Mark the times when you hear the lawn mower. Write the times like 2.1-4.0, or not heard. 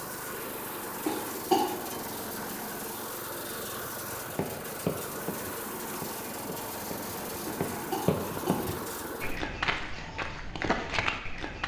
0.0-9.4.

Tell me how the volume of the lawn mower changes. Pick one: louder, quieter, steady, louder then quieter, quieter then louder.
steady.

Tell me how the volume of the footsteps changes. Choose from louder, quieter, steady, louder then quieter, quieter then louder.
quieter then louder.